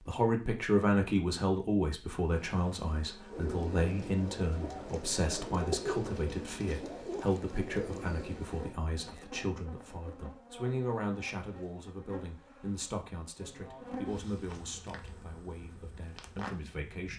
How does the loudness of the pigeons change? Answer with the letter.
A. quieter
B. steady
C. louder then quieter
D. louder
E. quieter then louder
C.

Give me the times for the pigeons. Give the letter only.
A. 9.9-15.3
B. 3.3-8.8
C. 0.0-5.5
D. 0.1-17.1
B.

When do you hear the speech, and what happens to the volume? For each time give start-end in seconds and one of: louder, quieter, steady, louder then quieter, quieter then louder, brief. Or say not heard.
0.1-17.1 quieter.